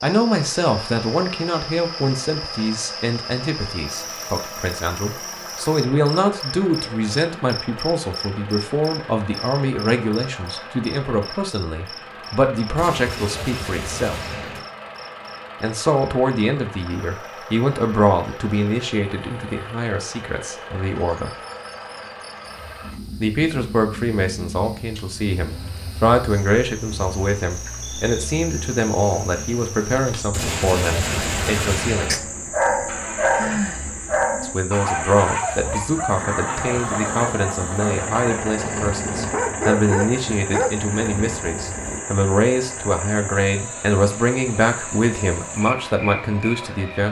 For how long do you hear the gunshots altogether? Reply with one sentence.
The gunshots can be heard for 4 seconds in total.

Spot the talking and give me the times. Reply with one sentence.
You can hear the talking from 0.0 to 14.2 s, from 15.6 to 21.3 s, from 23.2 to 32.2 s and from 34.4 to 47.0 s.